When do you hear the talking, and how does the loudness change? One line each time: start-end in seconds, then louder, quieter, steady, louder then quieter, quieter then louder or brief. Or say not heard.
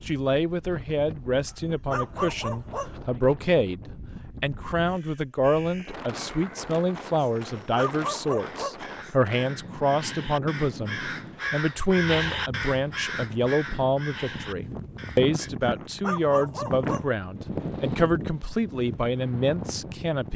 0.1-20.3 steady.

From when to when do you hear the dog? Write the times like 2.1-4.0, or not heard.
1.9-2.9, 7.8-8.8, 15.6-17.1.